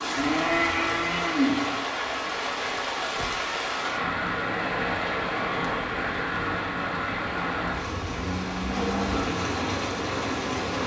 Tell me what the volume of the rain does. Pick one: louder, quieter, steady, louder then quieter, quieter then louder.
steady.